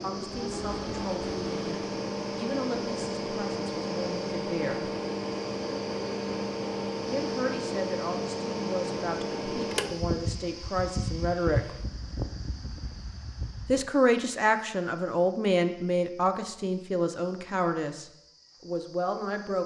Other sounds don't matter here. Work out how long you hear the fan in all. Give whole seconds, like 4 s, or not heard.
14 s.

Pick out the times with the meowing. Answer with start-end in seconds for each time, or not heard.
not heard.